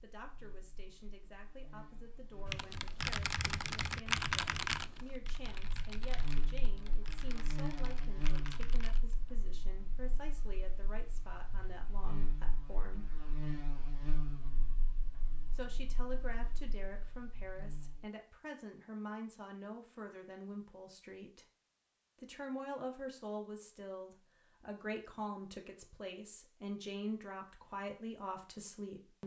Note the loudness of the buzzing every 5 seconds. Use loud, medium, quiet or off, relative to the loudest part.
quiet, loud, loud, medium, off, off.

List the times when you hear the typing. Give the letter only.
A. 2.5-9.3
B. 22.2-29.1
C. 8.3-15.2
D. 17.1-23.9
A.